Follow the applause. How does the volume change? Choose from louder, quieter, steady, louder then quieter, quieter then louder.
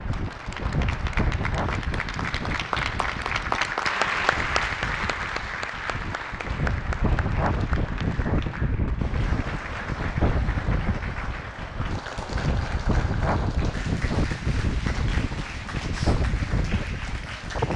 quieter.